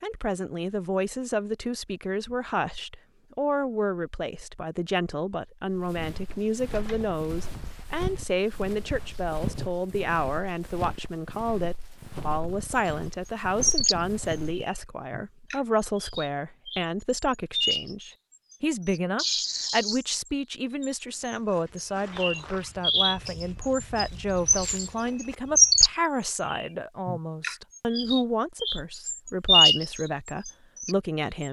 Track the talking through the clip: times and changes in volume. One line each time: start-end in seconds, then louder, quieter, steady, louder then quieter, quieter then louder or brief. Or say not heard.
0.0-31.4 steady.